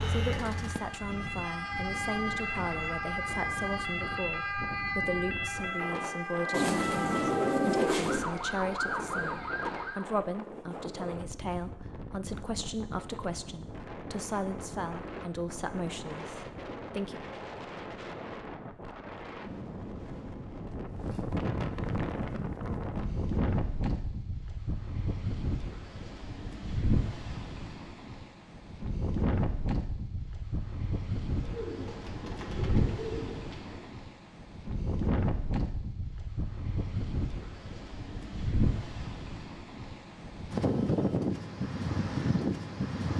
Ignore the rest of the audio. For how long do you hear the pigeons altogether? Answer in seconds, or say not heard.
4 s.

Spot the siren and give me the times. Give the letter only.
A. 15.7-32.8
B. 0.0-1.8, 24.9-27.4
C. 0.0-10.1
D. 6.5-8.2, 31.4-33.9
C.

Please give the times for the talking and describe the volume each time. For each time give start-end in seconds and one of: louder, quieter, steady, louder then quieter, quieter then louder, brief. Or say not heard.
0.1-17.1 steady.